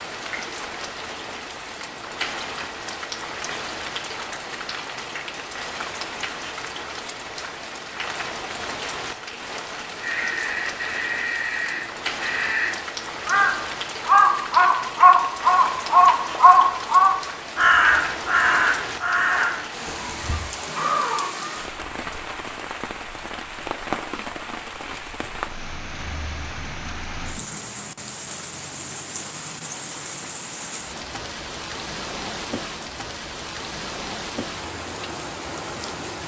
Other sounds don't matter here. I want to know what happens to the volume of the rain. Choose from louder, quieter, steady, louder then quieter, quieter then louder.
steady.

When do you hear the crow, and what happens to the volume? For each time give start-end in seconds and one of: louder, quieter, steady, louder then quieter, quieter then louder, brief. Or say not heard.
10.0-21.3 louder then quieter.